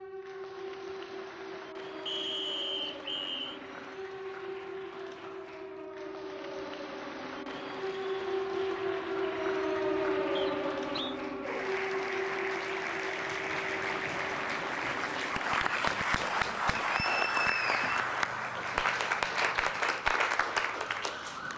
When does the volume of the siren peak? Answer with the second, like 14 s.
10 s.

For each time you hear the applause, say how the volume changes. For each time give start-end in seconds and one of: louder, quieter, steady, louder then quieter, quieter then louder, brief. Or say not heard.
0.0-21.5 louder.